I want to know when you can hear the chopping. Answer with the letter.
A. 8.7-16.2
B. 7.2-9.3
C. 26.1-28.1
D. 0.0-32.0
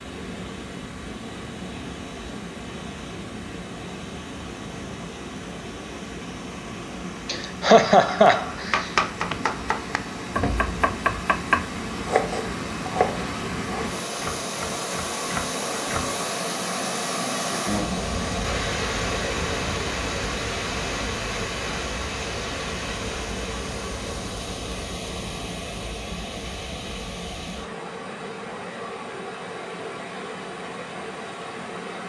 A.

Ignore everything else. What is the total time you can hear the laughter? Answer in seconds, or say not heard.
2 s.